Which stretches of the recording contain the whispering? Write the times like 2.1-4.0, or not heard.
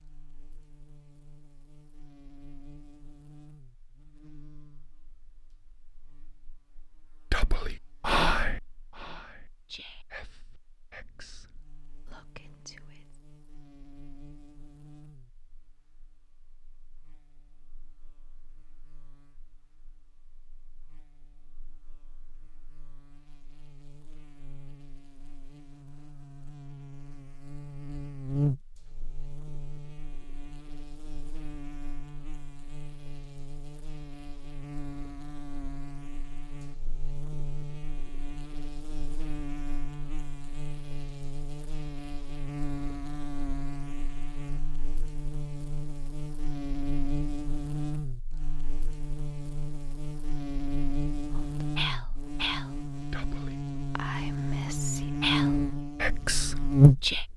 7.3-13.2, 51.3-57.2.